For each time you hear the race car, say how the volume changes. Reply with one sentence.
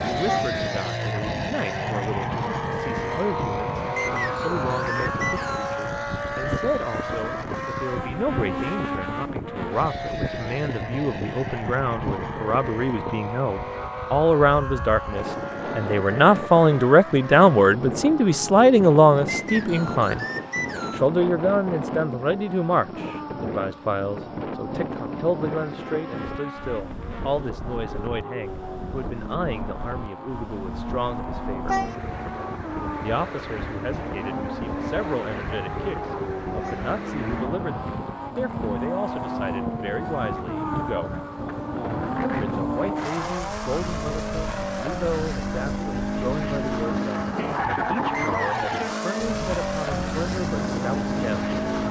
You can hear the race car from 0.0 to 51.8 s, getting quieter then louder.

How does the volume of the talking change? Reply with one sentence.
The volume of the talking goes up, then down.